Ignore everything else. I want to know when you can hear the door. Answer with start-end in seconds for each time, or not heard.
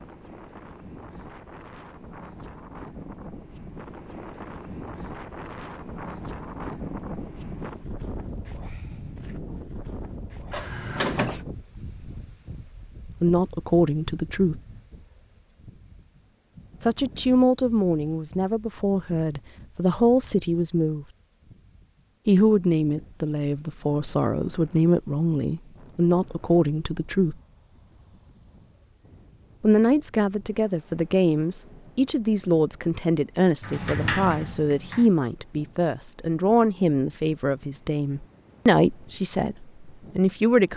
10.5-11.4, 33.6-35.1.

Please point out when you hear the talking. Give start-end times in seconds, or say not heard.
13.2-14.6, 16.8-21.1, 22.2-27.4, 29.6-40.7.